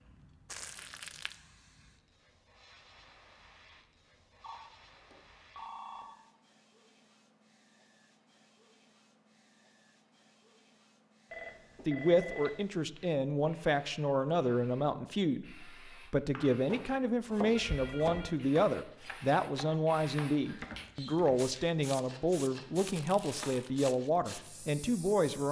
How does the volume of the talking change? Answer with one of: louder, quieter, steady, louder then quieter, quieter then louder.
steady.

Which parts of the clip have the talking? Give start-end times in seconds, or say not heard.
11.8-25.4.